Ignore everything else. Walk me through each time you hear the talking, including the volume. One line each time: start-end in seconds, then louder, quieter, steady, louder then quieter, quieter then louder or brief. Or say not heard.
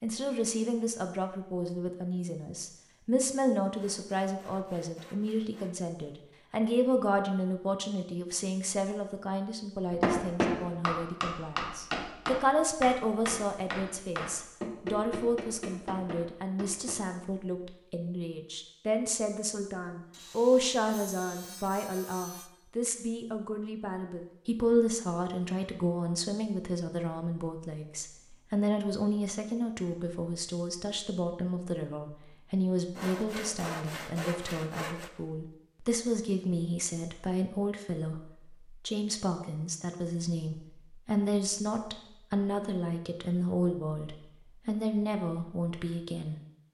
0.0-46.4 steady.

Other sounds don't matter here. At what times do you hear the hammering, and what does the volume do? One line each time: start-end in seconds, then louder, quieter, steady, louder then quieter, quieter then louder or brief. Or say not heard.
9.9-17.2 quieter.